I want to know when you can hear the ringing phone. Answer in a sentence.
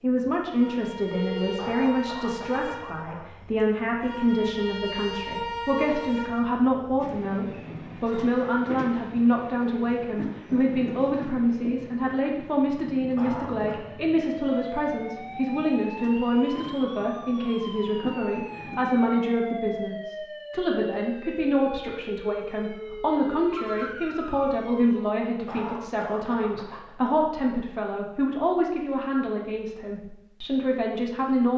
You can hear the ringing phone from 1.1 to 1.8 s and from 22.9 to 23.9 s.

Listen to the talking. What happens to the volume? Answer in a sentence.
The volume of the talking stays about the same.